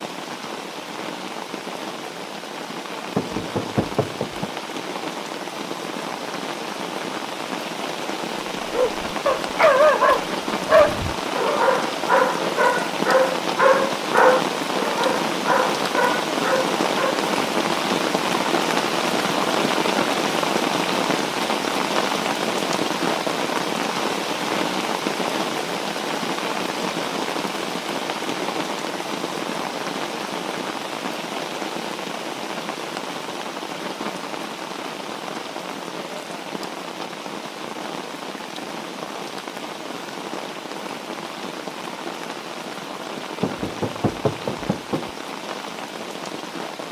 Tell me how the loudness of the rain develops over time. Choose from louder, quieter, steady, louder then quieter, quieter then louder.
louder then quieter.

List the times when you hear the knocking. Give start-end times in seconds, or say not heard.
3.1-4.5, 43.4-45.1.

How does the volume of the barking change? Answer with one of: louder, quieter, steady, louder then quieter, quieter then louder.
quieter.